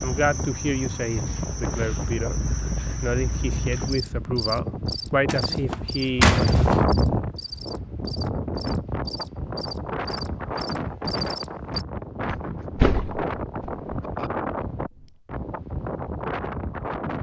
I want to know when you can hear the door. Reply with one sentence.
You can hear the door from 5.2 to 6.8 s and from 12.3 to 14.3 s.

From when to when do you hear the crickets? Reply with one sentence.
The crickets can be heard from 0.0 to 11.8 s.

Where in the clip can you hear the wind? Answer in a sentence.
You can hear the wind from 0.0 to 17.1 s.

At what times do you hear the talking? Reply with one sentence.
You can hear the talking from 0.0 to 2.4 s and from 3.0 to 6.4 s.